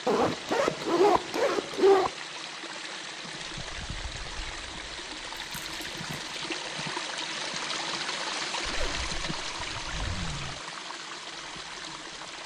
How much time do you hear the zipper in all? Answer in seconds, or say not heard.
5 s.